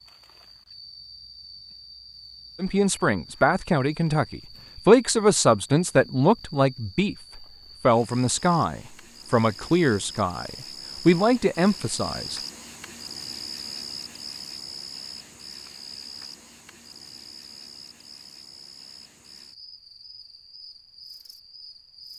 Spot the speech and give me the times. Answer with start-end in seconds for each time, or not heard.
2.5-12.4.